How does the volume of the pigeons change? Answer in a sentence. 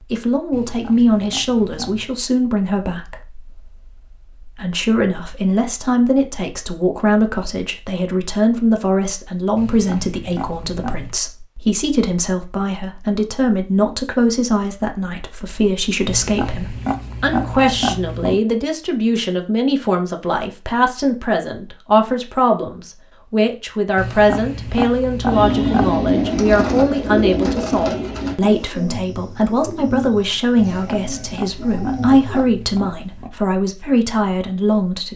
The volume of the pigeons goes down.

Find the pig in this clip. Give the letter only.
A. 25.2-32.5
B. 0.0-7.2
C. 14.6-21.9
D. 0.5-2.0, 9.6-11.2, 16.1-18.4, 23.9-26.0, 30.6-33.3
D.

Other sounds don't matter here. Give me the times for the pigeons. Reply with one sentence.
You can hear the pigeons from 25.2 to 32.5 s.